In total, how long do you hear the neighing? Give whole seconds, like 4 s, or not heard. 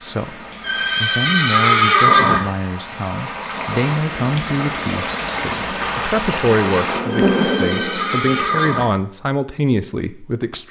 4 s.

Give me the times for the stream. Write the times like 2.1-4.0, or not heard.
0.0-7.0.